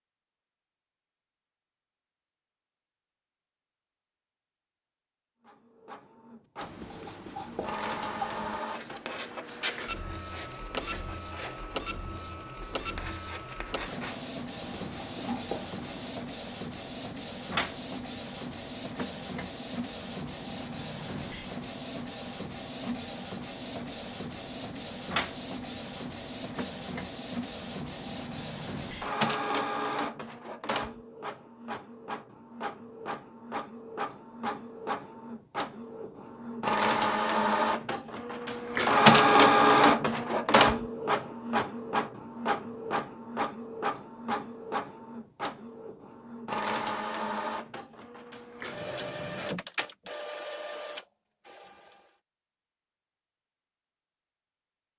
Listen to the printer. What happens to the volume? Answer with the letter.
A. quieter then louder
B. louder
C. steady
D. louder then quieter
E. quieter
D.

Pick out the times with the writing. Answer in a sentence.
You can hear the writing from 6.6 to 16.1 s.